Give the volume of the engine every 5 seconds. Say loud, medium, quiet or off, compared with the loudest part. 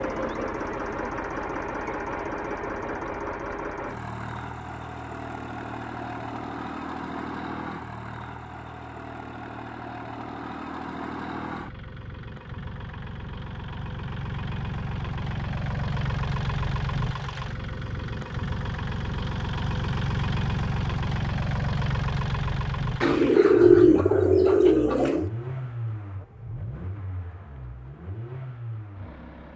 loud, medium, medium, loud, loud, medium.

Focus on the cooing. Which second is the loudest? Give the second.
24 s.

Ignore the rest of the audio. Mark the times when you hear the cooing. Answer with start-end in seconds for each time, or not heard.
23.0-25.3.